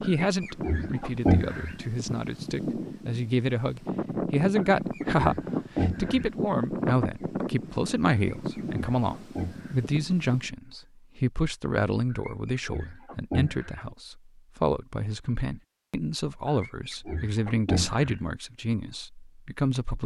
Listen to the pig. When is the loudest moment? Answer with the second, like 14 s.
1 s.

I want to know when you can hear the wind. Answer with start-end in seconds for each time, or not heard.
0.0-10.5.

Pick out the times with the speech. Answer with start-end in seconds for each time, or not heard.
0.0-20.0.